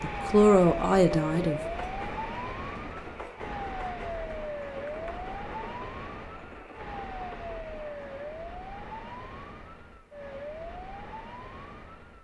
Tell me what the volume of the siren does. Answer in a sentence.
The loudness of the siren goes down.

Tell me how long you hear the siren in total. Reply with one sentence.
The siren can be heard for 12 seconds in total.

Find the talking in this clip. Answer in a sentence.
The talking can be heard from 0.0 to 1.6 s.